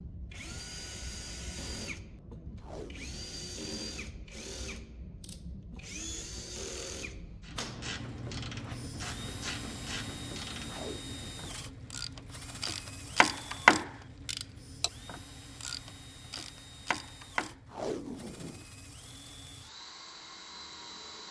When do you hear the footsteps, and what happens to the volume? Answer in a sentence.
The footsteps can't be heard in this clip.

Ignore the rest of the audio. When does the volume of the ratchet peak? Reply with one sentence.
The loudest moment of the ratchet is at 14 seconds.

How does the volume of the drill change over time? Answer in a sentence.
The volume of the drill goes down.